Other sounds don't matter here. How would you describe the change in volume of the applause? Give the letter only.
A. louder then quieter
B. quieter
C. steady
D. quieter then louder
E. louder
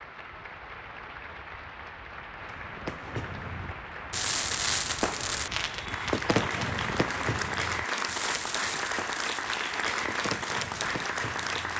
E.